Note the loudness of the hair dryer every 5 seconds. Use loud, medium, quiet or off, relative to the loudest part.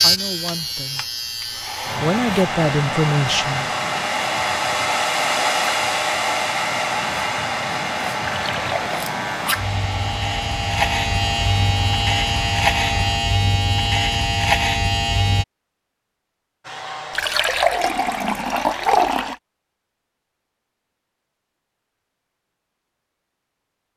loud, loud, medium, medium, off.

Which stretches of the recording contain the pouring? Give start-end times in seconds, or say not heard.
8.2-8.9, 17.1-19.4.